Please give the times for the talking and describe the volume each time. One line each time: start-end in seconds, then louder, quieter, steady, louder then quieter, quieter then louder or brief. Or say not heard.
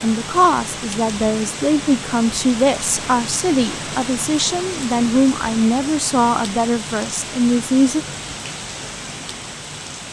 0.0-8.1 steady.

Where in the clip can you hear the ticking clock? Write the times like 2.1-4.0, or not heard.
not heard.